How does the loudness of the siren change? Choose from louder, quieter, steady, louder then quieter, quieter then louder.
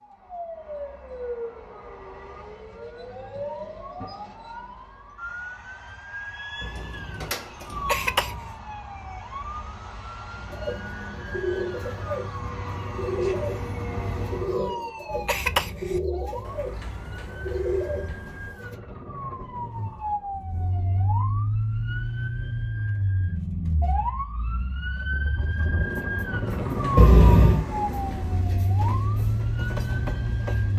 louder.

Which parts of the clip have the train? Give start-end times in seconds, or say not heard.
10.2-14.6, 25.6-30.7.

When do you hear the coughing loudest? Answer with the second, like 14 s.
27 s.